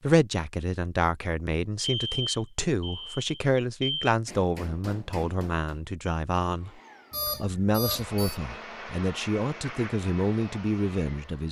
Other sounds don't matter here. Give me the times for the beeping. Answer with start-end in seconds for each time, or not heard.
1.8-4.2, 7.1-8.3.